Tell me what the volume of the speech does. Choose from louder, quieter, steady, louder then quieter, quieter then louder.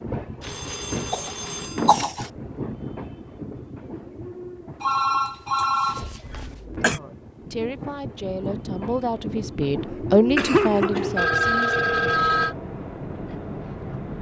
louder then quieter.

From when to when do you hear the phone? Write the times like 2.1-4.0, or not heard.
0.4-2.0, 4.8-6.5, 11.2-12.6.